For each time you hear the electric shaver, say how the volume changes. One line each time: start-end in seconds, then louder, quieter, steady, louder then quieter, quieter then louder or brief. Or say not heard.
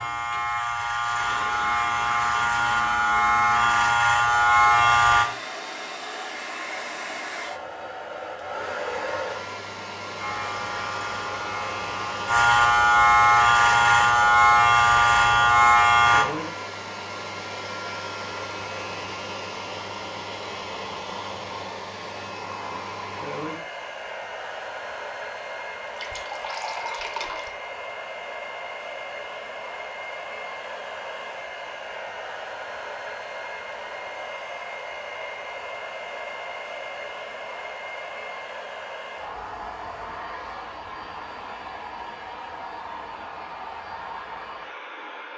0.0-5.2 louder
10.2-16.2 louder.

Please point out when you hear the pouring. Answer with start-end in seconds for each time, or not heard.
25.9-27.5.